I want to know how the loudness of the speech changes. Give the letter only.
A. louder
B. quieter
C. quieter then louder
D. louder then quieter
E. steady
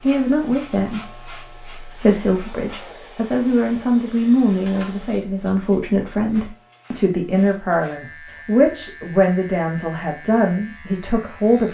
E.